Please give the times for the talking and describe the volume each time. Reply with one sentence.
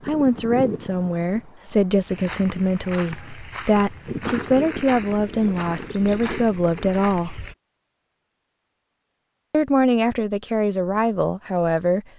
You can hear the talking from 0.1 to 7.4 s, at a steady volume; and briefly from 9.5 to 12.1 s.